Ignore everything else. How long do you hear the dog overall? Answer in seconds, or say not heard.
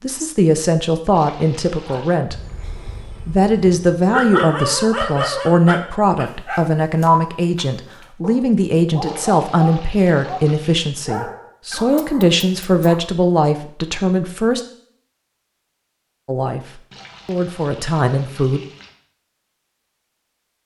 11 s.